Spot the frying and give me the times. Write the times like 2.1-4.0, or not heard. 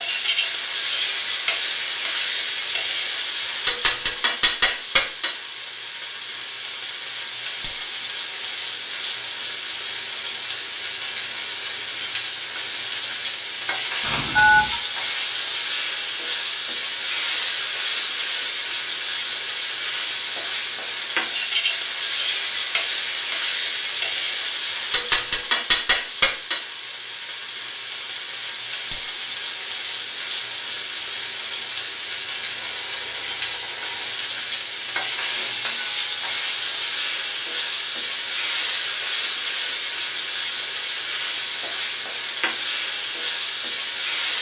0.0-44.3.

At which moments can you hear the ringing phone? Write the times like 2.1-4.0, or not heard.
14.0-14.8, 32.6-34.1.